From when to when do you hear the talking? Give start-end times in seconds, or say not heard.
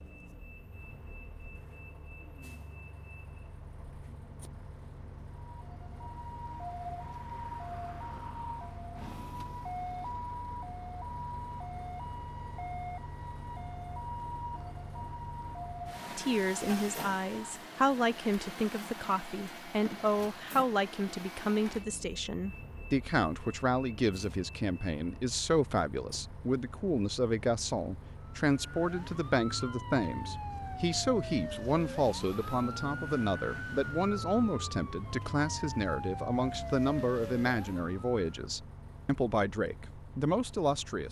16.1-41.0.